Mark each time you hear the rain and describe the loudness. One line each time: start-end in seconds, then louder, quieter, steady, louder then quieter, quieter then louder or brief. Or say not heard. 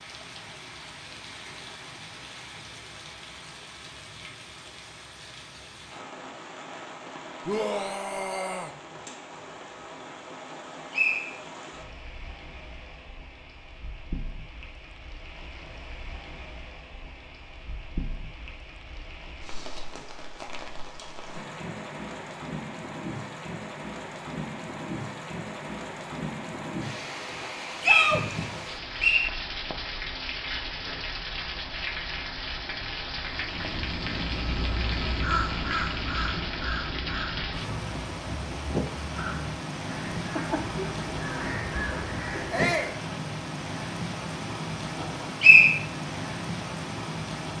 0.0-47.5 louder.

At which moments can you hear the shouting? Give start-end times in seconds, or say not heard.
7.5-8.8, 27.8-28.2, 42.5-43.0.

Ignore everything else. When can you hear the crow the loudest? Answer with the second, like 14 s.
35 s.